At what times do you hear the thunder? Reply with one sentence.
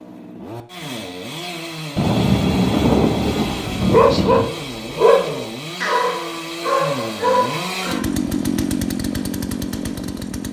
The thunder can be heard from 1.9 to 4.5 s.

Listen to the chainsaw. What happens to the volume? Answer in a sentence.
The loudness of the chainsaw goes up.